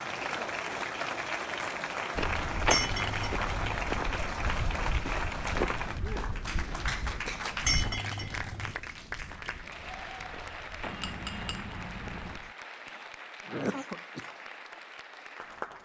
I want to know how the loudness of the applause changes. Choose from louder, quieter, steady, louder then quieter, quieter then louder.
quieter.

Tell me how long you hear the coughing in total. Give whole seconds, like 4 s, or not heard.
2 s.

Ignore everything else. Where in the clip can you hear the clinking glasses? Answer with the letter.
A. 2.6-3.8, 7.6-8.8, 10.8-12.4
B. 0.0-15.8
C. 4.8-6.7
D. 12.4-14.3
A.